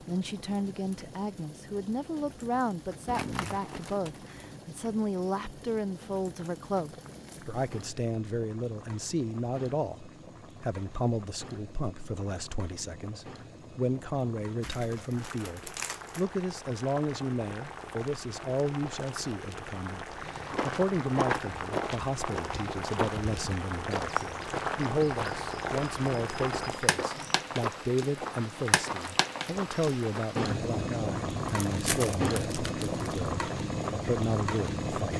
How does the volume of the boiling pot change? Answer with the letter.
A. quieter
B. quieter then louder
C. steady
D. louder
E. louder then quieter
D.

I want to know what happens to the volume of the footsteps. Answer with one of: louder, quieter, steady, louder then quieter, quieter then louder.
quieter.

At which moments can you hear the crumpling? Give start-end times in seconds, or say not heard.
3.0-4.4, 14.6-16.2, 31.6-33.3.